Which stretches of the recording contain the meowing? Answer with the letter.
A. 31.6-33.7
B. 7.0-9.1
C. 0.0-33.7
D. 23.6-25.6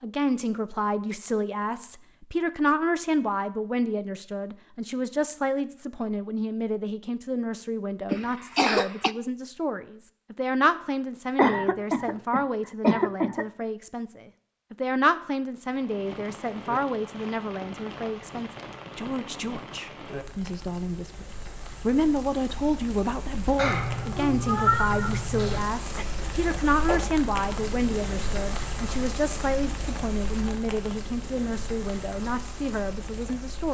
D.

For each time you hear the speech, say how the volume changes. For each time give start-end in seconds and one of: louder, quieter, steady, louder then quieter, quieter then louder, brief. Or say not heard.
0.0-33.7 steady.